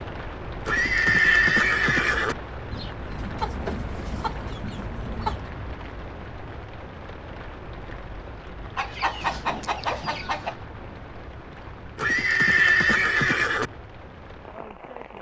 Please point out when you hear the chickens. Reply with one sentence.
You can hear the chickens from 2.7 to 5.5 s and from 8.8 to 10.6 s.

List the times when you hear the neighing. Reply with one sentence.
The neighing can be heard from 0.7 to 2.4 s and from 11.9 to 13.7 s.